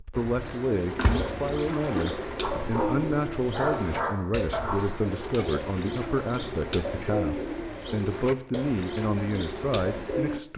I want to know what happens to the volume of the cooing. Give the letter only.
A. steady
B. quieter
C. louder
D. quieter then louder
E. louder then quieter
A.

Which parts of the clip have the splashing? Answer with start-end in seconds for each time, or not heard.
0.9-2.5.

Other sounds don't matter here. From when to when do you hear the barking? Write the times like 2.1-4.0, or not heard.
2.4-5.0.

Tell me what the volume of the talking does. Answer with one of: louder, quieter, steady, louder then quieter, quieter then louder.
steady.